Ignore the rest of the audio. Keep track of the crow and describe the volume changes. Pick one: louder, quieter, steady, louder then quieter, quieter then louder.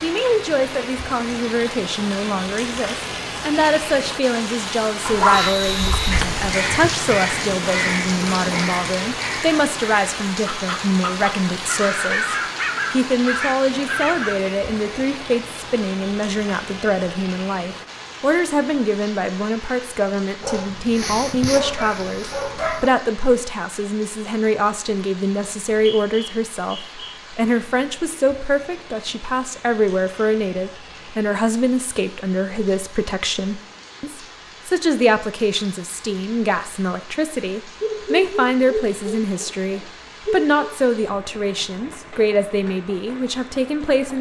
quieter then louder.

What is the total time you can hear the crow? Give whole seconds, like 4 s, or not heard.
9 s.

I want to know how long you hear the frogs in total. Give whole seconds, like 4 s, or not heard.
not heard.